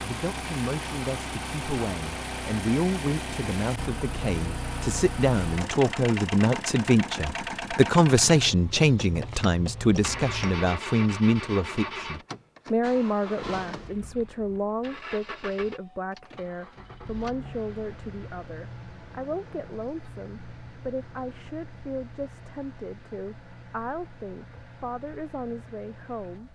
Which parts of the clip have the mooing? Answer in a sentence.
The mooing can't be heard in this clip.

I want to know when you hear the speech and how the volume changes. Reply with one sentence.
You can hear the speech from 0.0 to 26.4 s, getting louder then quieter.